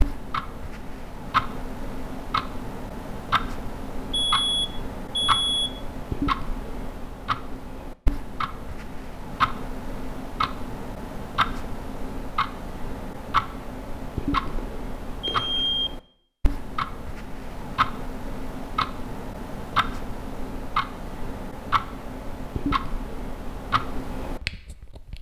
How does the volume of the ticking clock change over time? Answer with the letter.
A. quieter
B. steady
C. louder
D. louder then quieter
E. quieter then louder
B.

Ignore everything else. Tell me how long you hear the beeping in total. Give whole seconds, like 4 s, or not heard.
3 s.